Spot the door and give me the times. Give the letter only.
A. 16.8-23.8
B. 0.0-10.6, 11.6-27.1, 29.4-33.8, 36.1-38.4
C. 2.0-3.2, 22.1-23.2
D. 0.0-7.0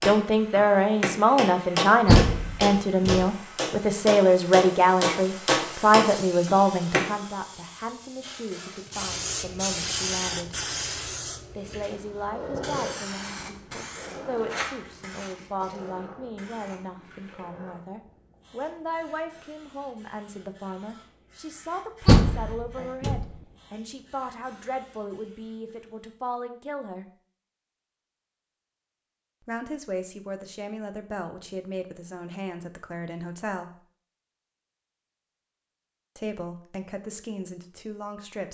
C.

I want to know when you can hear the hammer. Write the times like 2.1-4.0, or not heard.
0.0-7.0.